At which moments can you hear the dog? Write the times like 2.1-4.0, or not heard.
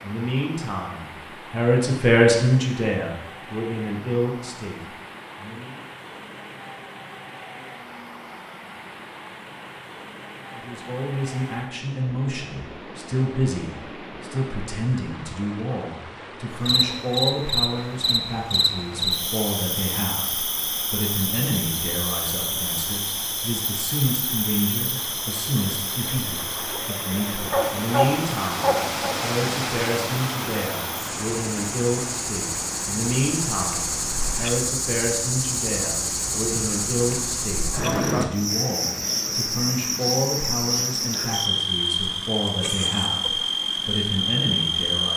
27.5-29.1.